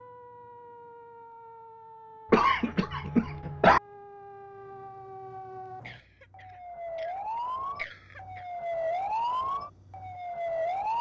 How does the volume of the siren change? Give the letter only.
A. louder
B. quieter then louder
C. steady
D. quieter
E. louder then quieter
A.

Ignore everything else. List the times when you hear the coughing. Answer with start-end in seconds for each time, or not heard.
2.3-3.8, 5.8-7.1, 7.8-8.4.